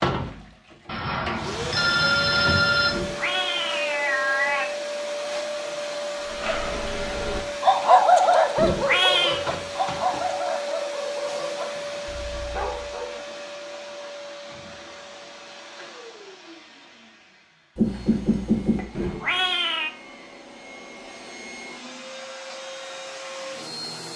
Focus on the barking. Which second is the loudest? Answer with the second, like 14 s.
8 s.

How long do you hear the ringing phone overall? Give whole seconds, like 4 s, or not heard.
3 s.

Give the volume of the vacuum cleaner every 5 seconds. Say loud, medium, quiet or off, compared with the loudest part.
loud, loud, loud, quiet, medium.